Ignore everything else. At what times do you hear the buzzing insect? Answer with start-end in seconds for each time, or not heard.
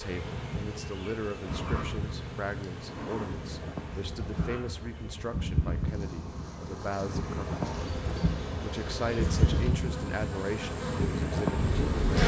0.0-12.2.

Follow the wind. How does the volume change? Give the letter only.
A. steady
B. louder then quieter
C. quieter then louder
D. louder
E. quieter
D.